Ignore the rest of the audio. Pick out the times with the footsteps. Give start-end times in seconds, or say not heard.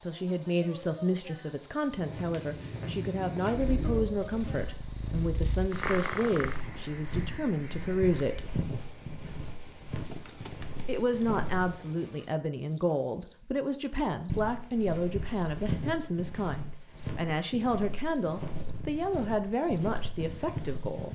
1.9-11.8, 14.1-21.1.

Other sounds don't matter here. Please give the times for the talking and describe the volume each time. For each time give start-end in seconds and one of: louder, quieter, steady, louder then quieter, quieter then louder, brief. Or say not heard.
0.0-8.5 steady
10.8-21.1 steady.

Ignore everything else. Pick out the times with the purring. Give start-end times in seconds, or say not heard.
3.8-6.6.